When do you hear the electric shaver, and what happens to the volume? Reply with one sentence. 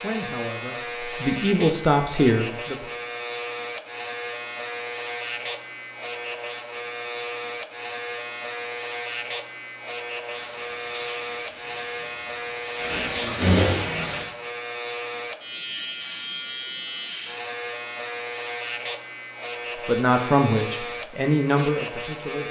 The electric shaver can be heard from 0.0 to 22.4 s, at a steady volume.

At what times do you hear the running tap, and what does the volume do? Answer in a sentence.
You can hear the running tap from 10.2 to 14.2 s, getting quieter then louder.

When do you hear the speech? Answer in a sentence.
You can hear the speech from 0.0 to 2.8 s and from 19.9 to 22.4 s.